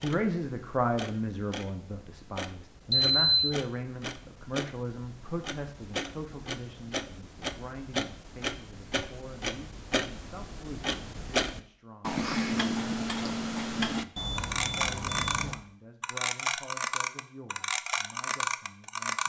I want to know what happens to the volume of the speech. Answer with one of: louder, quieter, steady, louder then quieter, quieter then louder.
quieter.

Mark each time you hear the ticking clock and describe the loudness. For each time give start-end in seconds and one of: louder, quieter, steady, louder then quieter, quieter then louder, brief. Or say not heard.
0.0-19.2 louder.